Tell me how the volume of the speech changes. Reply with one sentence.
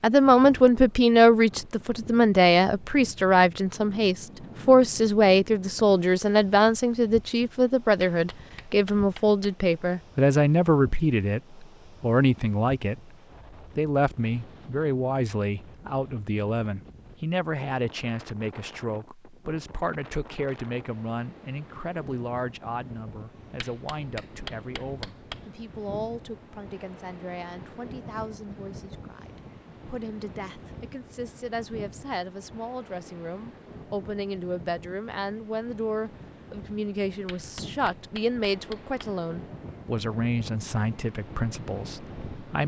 The loudness of the speech goes down, then up.